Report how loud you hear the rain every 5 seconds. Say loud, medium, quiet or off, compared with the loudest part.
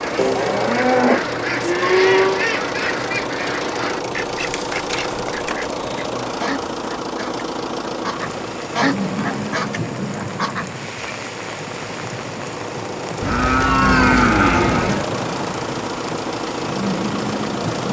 off, loud, loud, loud.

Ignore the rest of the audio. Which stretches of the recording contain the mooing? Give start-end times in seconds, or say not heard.
0.1-2.5, 13.2-15.1.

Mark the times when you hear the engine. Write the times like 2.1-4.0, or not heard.
0.0-17.8.